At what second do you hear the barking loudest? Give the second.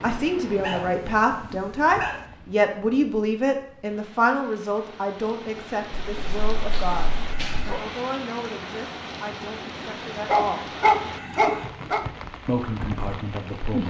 11 s.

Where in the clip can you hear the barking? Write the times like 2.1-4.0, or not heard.
0.6-2.2, 6.0-7.8, 10.2-12.1.